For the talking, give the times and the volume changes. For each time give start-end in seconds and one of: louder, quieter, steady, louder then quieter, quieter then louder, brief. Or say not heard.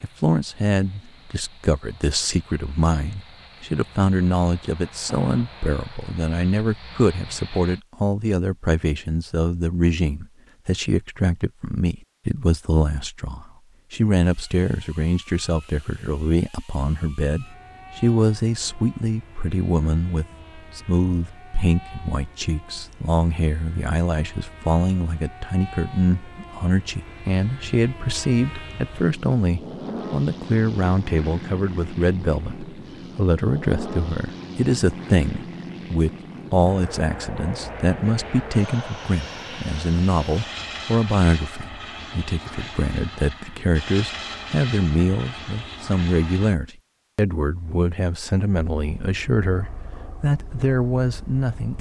0.0-51.7 steady.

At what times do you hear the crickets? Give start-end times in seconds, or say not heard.
not heard.